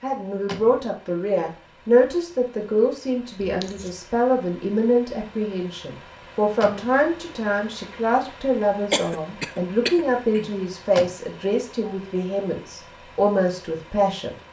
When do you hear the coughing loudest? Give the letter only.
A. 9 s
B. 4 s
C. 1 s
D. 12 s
A.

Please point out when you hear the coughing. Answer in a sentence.
The coughing can be heard from 3.4 to 4.0 s and from 8.9 to 10.5 s.